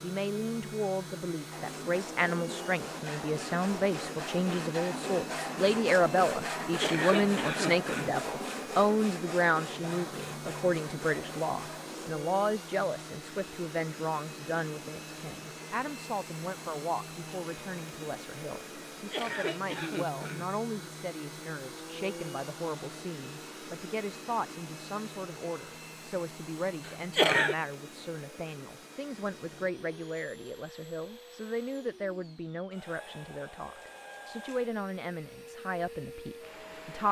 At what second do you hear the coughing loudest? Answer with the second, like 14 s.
27 s.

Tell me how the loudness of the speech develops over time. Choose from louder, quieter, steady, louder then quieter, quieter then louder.
quieter.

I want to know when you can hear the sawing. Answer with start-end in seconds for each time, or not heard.
1.5-12.2.